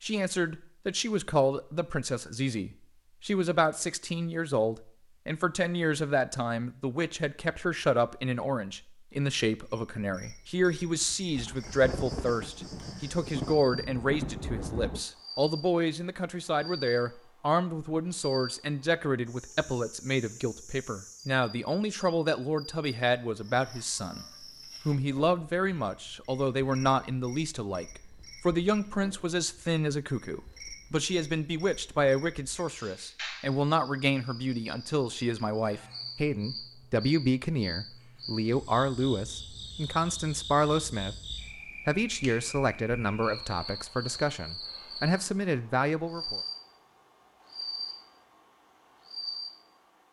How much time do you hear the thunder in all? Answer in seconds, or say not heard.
4 s.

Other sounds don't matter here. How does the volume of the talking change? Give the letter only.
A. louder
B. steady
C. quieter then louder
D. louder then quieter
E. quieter
B.